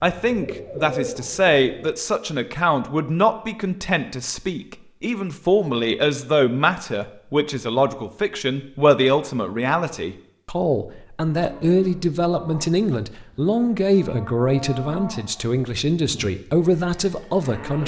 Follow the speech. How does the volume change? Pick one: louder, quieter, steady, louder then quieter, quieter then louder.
steady.